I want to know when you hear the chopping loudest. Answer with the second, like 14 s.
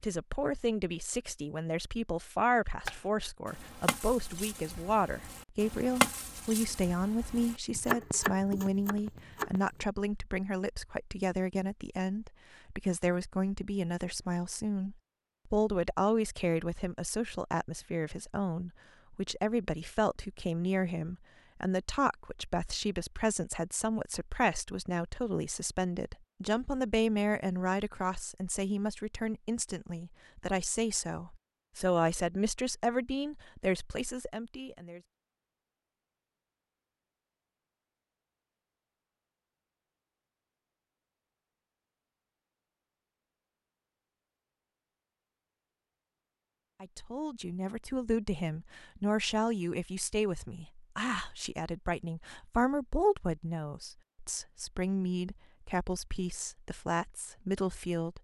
6 s.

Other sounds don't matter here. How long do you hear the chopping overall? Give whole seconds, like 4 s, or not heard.
7 s.